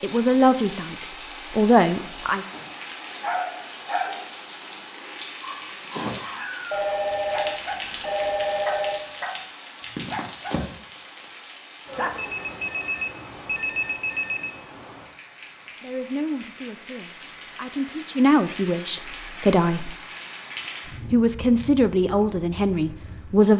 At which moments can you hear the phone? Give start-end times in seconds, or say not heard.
6.7-9.1, 11.9-14.5.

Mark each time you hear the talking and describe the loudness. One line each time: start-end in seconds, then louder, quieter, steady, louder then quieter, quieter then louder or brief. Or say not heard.
0.0-2.5 brief
15.8-19.9 quieter then louder
21.1-23.5 brief.